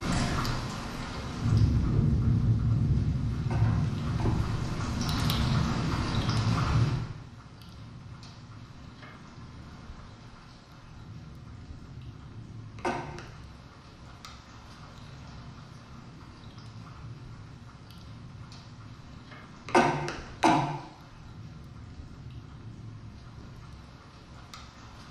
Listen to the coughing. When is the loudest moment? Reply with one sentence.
The loudest moment of the coughing is at 20 seconds.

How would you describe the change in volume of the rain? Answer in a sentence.
The volume of the rain goes down.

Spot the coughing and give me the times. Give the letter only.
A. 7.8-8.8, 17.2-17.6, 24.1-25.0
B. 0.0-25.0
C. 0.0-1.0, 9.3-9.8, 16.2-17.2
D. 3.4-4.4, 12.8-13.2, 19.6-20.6
D.